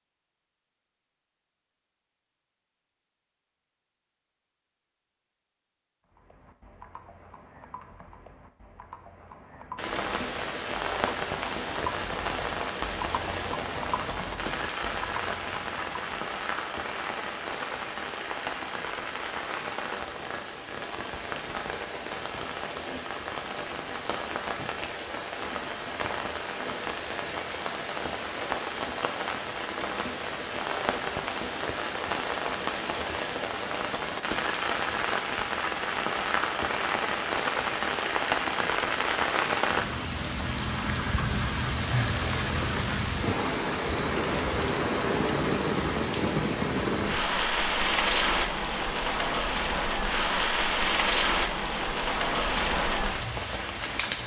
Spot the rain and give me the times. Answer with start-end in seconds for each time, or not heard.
9.8-54.2.